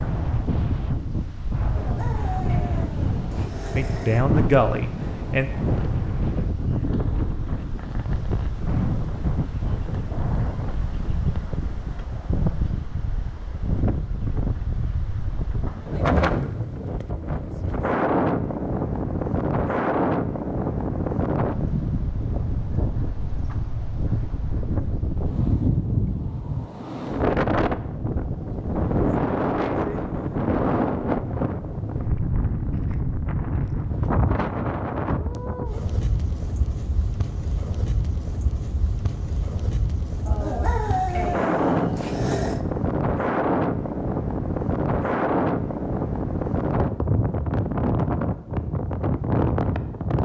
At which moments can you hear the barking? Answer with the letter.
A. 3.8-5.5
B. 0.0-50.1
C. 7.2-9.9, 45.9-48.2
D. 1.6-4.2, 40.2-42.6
D.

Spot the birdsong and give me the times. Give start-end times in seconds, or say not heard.
not heard.